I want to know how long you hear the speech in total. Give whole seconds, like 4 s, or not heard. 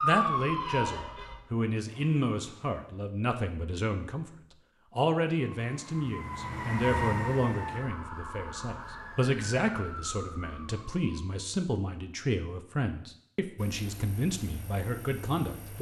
15 s.